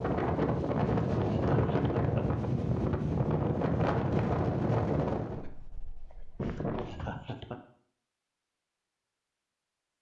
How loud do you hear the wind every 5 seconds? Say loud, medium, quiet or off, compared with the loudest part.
loud, medium.